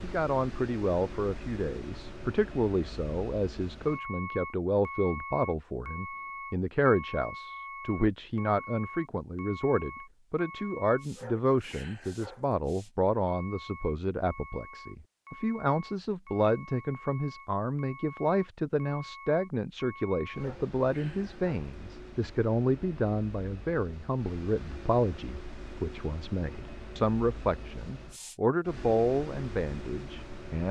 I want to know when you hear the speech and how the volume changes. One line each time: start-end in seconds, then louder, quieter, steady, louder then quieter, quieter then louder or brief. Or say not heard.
0.0-30.6 steady.